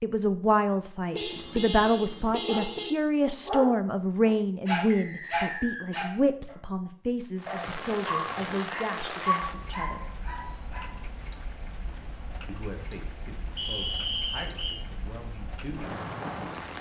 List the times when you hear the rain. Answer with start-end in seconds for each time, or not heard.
7.3-16.7.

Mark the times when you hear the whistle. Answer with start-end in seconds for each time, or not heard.
4.9-5.9, 13.6-14.8.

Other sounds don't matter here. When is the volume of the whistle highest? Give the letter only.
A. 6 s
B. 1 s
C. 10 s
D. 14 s
D.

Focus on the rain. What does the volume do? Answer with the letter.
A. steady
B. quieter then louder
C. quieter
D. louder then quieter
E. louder
B.